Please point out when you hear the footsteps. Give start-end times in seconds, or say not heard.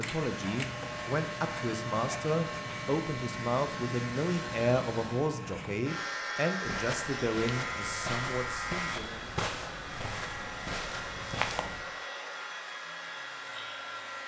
6.6-11.8.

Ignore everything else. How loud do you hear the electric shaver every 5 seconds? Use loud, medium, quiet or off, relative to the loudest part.
loud, loud, medium.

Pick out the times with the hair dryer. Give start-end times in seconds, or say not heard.
0.0-14.2.